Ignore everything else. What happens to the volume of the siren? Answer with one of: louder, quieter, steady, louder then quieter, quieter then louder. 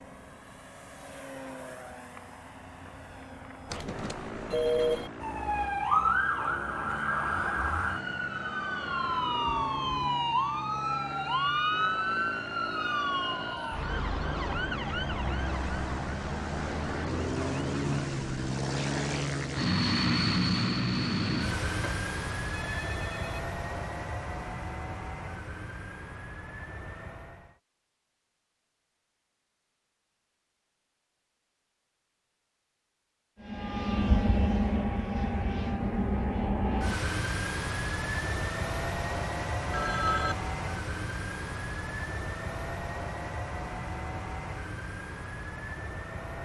quieter.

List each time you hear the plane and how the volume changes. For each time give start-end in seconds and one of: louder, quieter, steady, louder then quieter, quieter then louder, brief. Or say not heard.
0.0-27.6 louder then quieter
33.4-46.4 quieter.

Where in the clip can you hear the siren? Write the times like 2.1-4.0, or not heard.
5.2-18.4.